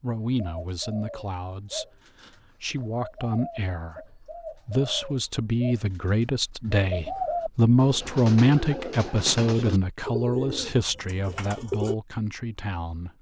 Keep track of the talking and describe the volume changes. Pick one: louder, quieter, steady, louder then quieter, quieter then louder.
louder then quieter.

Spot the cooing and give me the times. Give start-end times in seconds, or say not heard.
0.2-11.9.